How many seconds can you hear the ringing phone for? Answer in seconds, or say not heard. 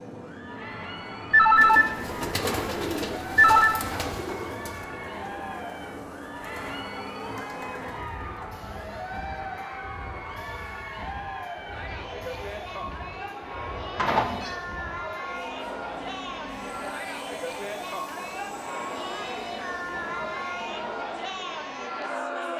3 s.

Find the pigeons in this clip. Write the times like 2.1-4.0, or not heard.
1.6-9.7.